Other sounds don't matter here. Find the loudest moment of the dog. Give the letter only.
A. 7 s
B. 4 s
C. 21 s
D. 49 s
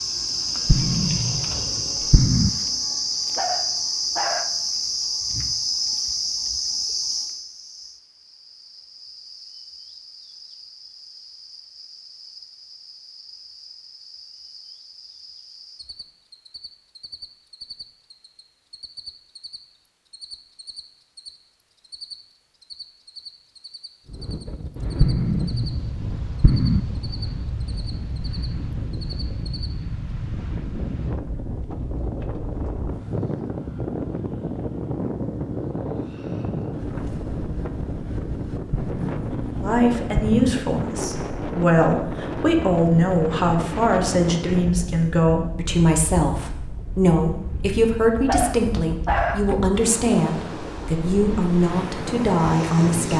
D.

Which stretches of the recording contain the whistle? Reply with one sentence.
You can't hear the whistle here.